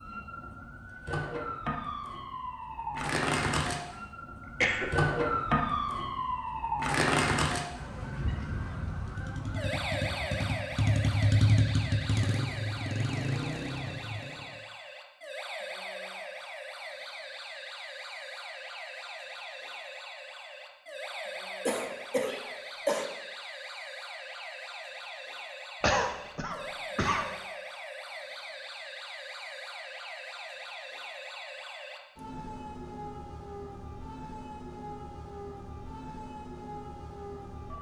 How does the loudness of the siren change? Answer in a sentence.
The loudness of the siren goes down.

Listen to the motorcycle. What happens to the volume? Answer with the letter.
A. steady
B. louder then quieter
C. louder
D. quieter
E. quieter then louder
B.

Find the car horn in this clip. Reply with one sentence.
You can't hear the car horn here.